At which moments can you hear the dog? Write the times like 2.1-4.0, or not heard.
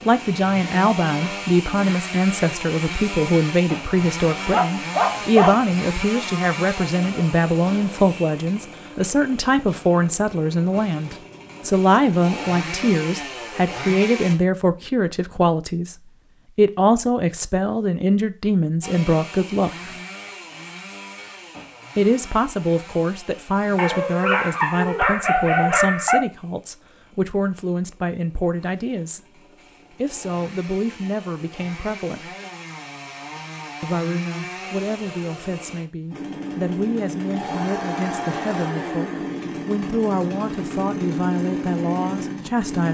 4.5-5.7, 23.8-26.2.